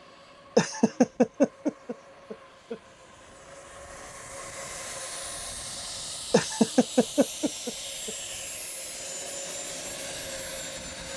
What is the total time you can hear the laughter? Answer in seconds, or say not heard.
4 s.